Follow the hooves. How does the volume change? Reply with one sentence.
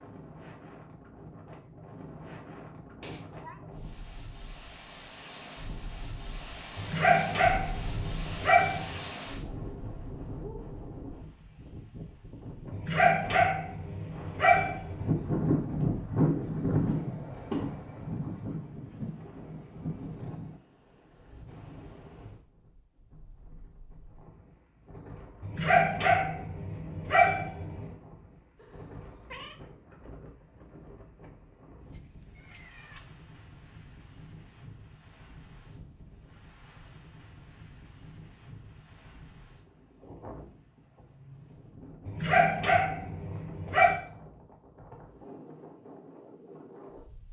The loudness of the hooves goes down.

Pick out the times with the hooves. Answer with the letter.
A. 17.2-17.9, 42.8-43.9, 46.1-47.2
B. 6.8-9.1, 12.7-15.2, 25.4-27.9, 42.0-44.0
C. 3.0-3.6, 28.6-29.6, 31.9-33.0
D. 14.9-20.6
D.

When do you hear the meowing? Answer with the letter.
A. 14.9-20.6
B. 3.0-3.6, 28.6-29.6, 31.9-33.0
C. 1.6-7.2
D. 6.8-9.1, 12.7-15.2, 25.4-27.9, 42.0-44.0
B.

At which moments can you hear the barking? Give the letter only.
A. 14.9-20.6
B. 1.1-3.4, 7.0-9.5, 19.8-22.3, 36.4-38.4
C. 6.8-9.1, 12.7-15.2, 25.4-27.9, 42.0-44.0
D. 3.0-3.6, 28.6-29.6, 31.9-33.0
C.